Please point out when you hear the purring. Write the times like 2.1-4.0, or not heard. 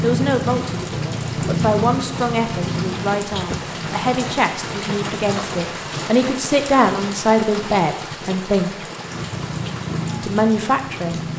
0.0-5.9, 9.1-11.3.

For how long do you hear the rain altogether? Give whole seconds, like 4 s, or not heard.
11 s.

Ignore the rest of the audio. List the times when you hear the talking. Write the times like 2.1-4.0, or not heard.
0.0-8.7, 10.2-11.2.